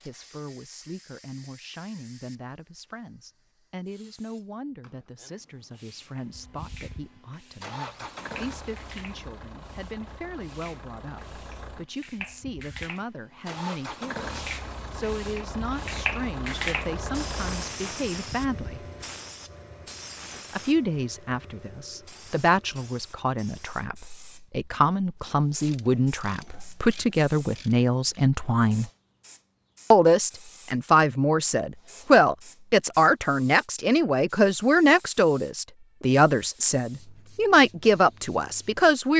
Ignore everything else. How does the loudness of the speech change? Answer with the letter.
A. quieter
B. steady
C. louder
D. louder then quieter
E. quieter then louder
C.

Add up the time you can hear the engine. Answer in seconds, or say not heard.
13 s.